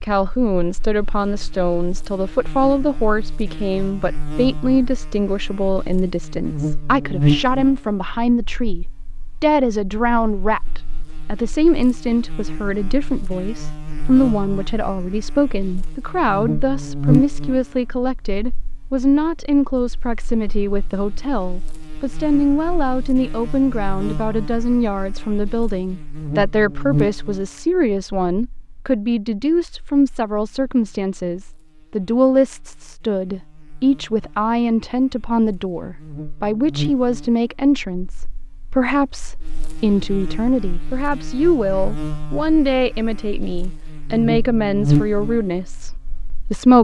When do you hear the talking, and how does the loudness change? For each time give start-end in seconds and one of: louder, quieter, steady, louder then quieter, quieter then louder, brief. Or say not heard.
0.0-46.7 steady.